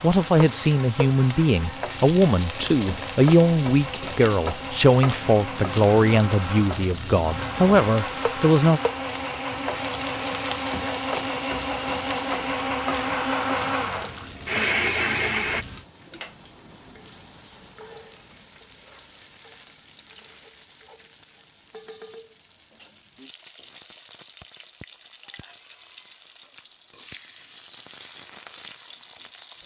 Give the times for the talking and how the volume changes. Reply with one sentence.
The talking can be heard from 0.0 to 8.8 s, at a steady volume.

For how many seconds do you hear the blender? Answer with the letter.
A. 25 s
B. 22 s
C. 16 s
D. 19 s
C.